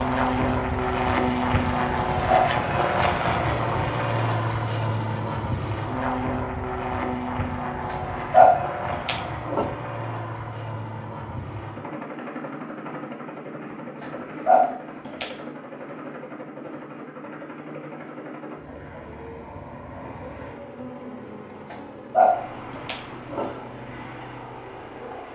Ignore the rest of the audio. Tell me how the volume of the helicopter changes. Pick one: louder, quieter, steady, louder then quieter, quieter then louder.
quieter.